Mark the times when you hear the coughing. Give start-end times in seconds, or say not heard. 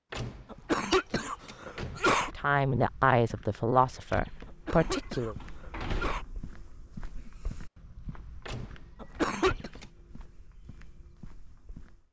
0.5-2.3, 4.5-6.2, 9.0-9.7.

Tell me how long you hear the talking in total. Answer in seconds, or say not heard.
3 s.